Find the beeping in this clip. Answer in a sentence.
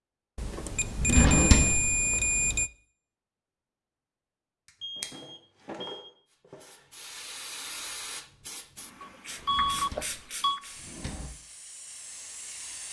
You can hear the beeping from 0.3 to 2.7 s, from 4.8 to 6.2 s and from 9.0 to 10.6 s.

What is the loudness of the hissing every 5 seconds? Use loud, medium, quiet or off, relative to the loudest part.
off, loud, loud.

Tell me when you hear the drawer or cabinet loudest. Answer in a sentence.
The volume of the drawer or cabinet peaks at 1 second.